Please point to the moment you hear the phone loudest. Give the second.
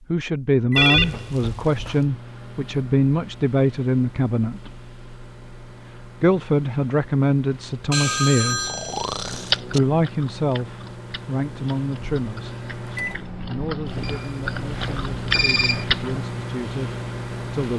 1 s.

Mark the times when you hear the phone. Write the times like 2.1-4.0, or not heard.
0.8-2.0, 7.9-9.8, 14.0-15.8.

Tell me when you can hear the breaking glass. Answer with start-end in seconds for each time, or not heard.
not heard.